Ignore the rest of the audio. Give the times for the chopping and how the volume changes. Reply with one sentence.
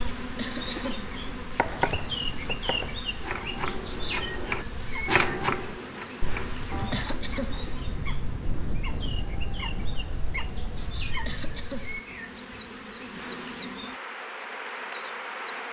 The chopping can be heard from 1.5 to 7.0 s, getting louder then quieter.